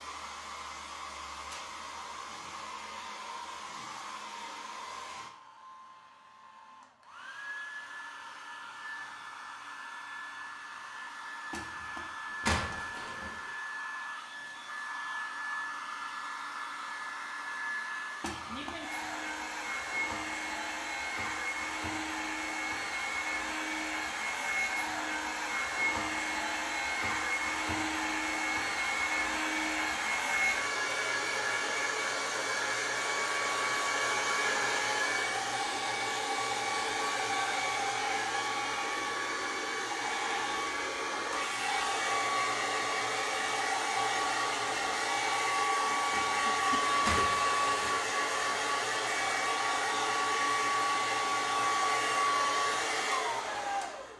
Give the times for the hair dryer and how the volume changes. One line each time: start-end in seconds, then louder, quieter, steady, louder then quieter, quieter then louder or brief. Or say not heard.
0.0-54.1 louder.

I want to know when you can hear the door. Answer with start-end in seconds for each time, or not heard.
11.5-13.3, 18.2-18.9, 46.1-48.0.